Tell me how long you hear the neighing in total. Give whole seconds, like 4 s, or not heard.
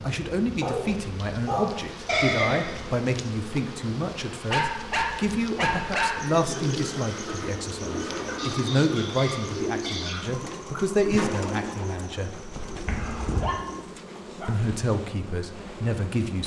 4 s.